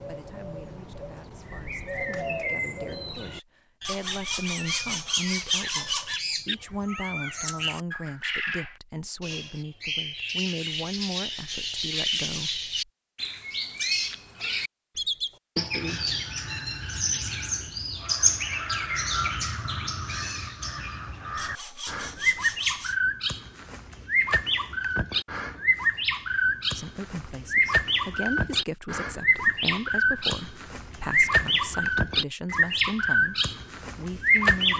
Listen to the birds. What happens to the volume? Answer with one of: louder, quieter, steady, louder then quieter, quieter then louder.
louder.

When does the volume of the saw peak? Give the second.
6 s.